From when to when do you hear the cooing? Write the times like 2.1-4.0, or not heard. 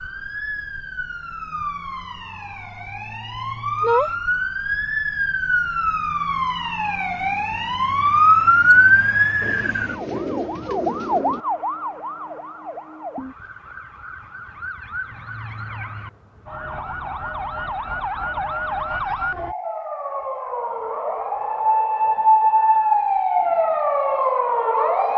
9.4-11.4.